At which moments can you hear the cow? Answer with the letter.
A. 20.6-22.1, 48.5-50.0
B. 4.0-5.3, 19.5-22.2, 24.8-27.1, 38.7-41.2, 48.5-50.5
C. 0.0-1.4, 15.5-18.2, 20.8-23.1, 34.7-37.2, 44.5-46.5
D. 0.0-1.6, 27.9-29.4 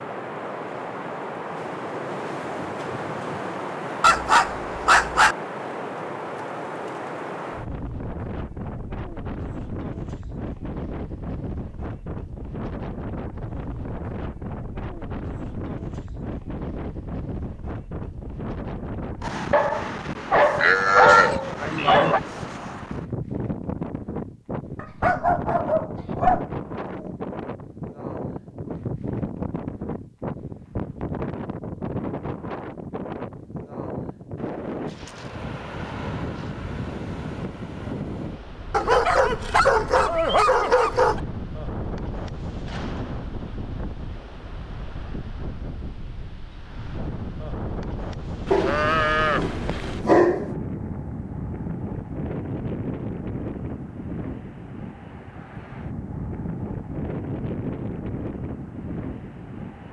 A.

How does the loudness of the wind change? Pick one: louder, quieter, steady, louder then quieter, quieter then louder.
steady.